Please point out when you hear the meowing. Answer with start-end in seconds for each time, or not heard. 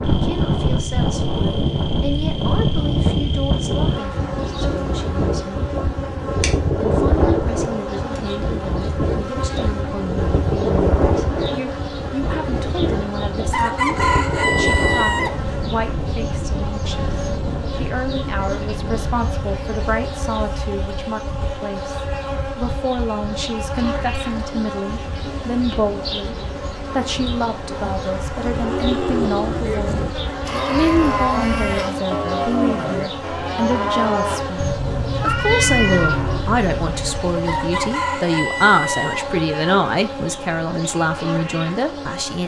35.2-36.3.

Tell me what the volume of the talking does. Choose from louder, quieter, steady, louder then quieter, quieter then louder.
louder.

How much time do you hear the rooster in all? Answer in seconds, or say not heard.
4 s.